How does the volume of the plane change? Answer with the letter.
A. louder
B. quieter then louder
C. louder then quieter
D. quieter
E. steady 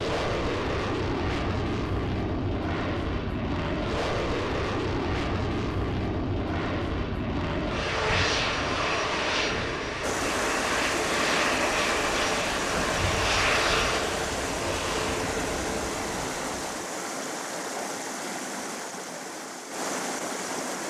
E.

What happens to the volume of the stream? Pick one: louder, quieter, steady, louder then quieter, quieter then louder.
steady.